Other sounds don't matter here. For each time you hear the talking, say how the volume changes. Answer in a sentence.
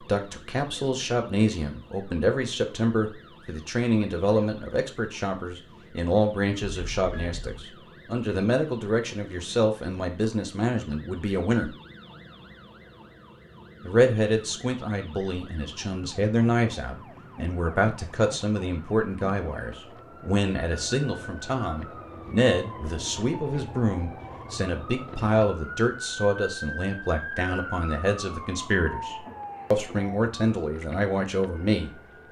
You can hear the talking from 0.0 to 11.8 s, at a steady volume; and from 13.8 to 32.2 s, at a steady volume.